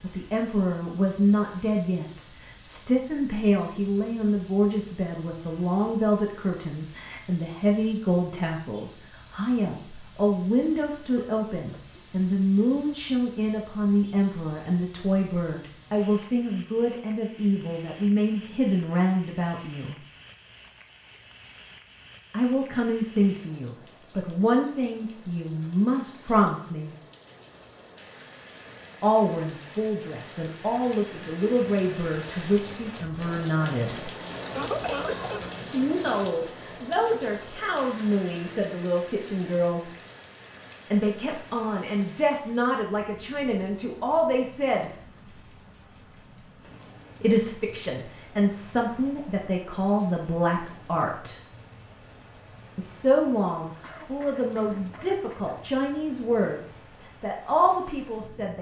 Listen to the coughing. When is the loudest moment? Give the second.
35 s.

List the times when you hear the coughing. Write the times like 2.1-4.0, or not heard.
11.2-12.0, 34.5-35.5, 53.8-55.5.